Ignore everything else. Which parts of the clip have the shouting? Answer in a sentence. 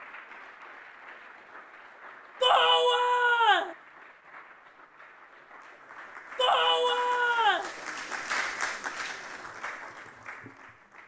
You can hear the shouting from 2.4 to 3.8 s and from 6.3 to 7.7 s.